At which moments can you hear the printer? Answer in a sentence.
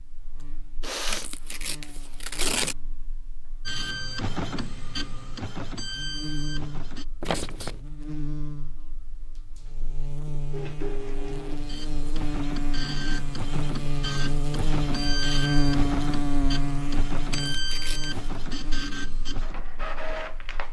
The printer can be heard from 3.6 to 7.0 s and from 10.5 to 20.6 s.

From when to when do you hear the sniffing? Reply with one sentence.
You can hear the sniffing from 0.8 to 1.3 s.